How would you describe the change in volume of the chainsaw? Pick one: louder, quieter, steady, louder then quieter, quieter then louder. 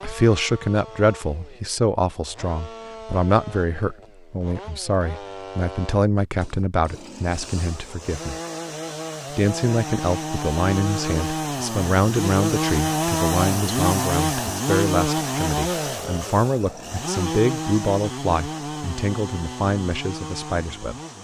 louder then quieter.